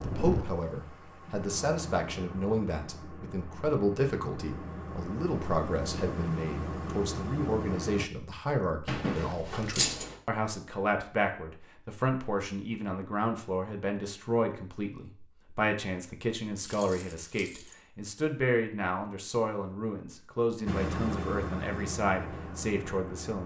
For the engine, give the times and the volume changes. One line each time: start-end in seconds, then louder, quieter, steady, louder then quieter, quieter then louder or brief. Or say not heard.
0.0-8.1 louder
20.6-23.4 brief.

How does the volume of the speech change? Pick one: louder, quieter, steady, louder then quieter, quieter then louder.
steady.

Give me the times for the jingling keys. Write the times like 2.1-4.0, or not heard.
8.8-10.2, 16.6-17.8.